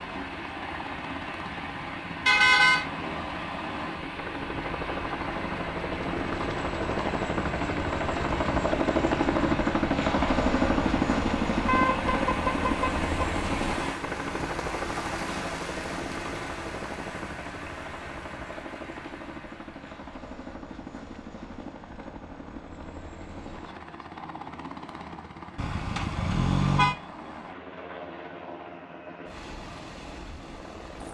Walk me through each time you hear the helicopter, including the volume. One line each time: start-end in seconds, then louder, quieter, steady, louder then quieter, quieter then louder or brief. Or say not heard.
0.0-31.0 louder then quieter.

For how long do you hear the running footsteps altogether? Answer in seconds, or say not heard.
not heard.